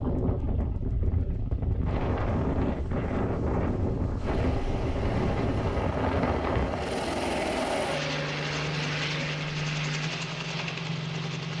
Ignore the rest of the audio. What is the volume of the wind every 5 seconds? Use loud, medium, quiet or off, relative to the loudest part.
loud, loud, off.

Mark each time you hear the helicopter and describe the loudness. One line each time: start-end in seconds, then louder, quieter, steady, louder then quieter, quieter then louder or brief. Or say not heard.
4.2-11.5 louder.